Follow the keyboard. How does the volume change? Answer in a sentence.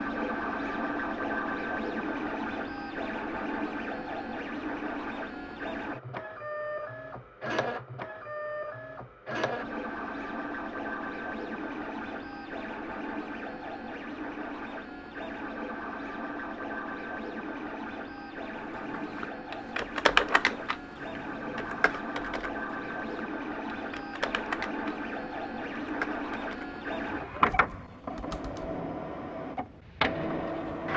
The loudness of the keyboard goes down.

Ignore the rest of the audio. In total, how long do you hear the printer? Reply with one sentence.
You can hear the printer for 31 seconds altogether.